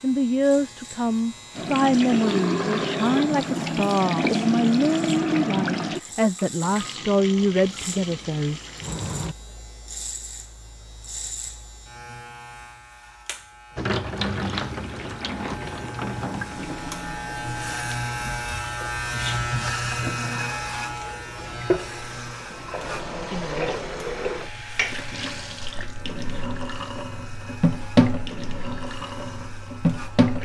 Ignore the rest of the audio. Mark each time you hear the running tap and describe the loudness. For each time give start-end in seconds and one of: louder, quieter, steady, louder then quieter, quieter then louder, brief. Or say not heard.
1.6-9.3 quieter
13.8-30.4 quieter then louder.